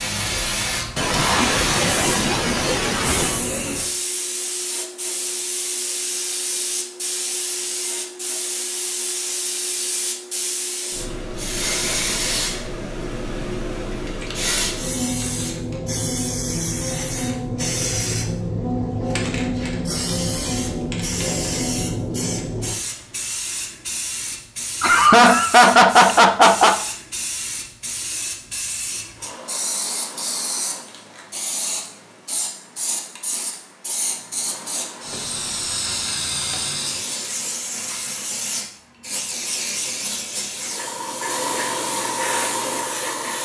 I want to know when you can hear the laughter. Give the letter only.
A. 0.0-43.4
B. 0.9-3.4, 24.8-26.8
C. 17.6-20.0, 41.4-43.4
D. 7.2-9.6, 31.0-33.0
B.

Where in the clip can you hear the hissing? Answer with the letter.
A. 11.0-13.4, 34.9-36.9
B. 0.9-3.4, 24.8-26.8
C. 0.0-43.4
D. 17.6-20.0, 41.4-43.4
C.